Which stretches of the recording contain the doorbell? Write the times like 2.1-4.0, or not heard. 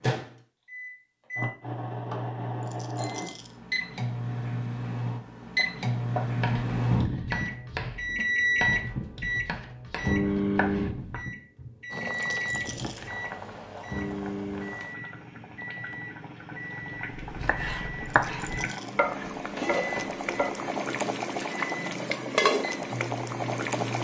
not heard.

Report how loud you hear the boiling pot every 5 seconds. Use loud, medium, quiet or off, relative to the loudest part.
off, off, medium, medium, loud.